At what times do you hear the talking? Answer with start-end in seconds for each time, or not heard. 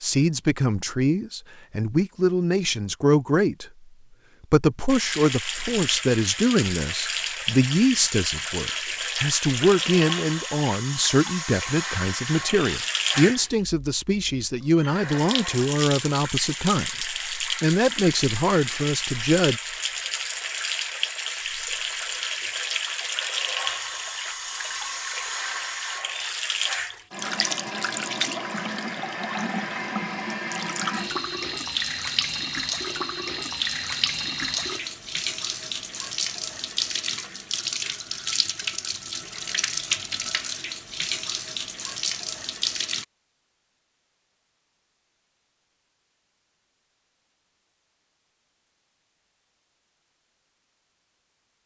0.0-3.6, 4.5-19.6.